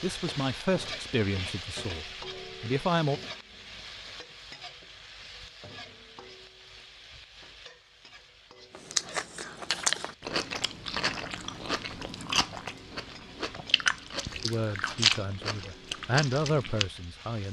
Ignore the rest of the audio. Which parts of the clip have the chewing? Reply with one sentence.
The chewing can be heard from 8.7 to 16.9 s.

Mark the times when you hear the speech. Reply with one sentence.
The speech can be heard from 0.0 to 3.2 s and from 14.4 to 17.4 s.